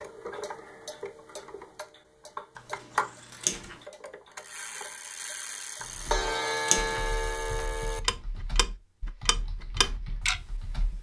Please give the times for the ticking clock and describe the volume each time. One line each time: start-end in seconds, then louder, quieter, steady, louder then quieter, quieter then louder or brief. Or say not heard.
0.0-10.9 louder.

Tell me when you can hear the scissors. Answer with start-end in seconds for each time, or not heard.
2.5-3.8, 5.8-7.0.